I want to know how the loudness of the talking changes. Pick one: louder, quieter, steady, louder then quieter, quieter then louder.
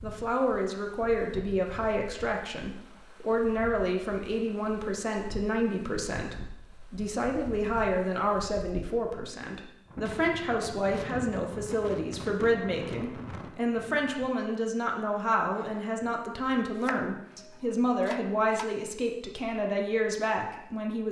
steady.